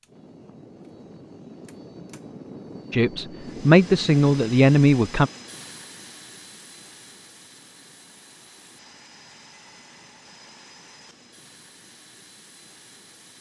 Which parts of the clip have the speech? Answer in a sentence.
The speech can be heard from 2.9 to 5.3 s.